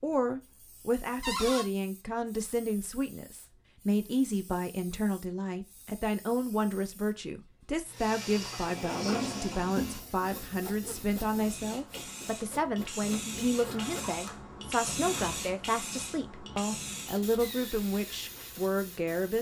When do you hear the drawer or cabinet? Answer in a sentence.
You can hear the drawer or cabinet from 1.2 to 1.6 s, from 8.4 to 10.2 s and from 13.5 to 15.4 s.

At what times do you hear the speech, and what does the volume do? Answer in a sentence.
The speech can be heard from 0.0 to 19.3 s, at a steady volume.